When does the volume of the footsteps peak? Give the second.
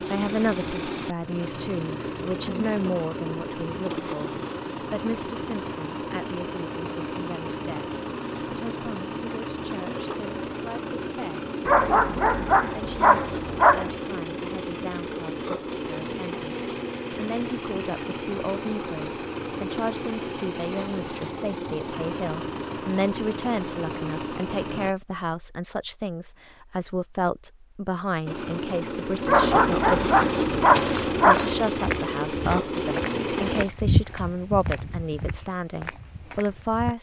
34 s.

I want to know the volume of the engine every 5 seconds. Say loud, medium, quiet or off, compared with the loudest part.
medium, medium, medium, medium, medium, loud, loud, off.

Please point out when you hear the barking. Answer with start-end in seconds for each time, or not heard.
11.7-13.9, 29.2-31.6.